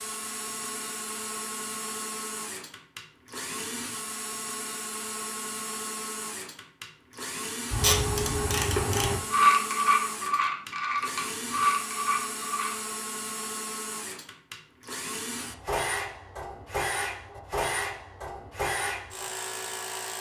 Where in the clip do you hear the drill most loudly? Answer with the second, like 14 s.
17 s.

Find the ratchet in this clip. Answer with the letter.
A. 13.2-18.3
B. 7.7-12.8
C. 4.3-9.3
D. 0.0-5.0
B.